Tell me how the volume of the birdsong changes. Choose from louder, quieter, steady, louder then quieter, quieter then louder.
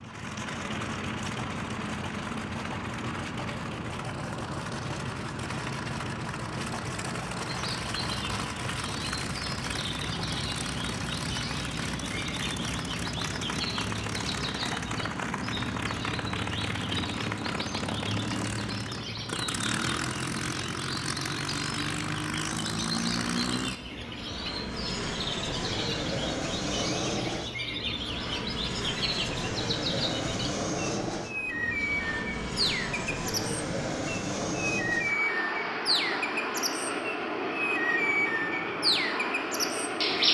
louder.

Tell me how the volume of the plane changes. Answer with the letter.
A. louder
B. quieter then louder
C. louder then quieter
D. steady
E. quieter
D.